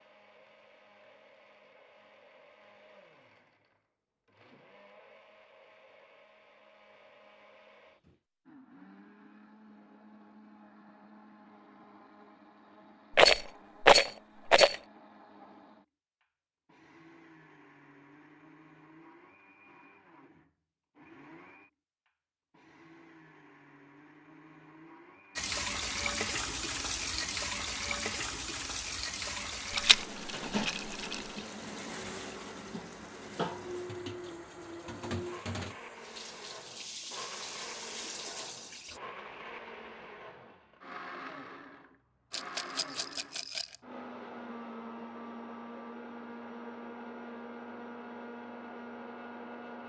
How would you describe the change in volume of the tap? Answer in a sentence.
The loudness of the tap goes down.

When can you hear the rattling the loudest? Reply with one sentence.
The loudest moment of the rattling is at 14 seconds.